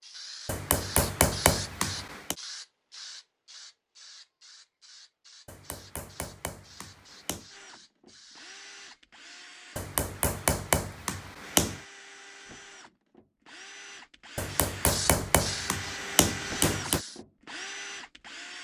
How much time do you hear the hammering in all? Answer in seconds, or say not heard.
9 s.